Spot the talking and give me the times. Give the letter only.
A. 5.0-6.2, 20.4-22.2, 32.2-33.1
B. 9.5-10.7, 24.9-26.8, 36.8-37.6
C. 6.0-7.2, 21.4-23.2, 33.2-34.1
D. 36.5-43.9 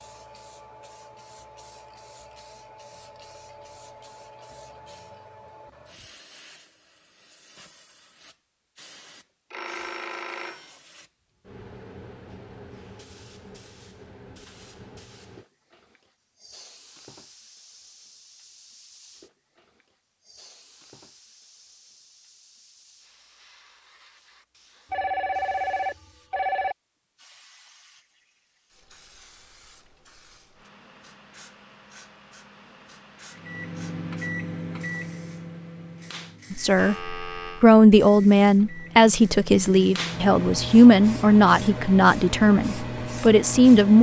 D.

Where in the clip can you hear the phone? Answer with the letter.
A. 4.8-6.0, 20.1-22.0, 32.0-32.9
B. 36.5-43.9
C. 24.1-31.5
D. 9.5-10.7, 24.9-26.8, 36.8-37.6
D.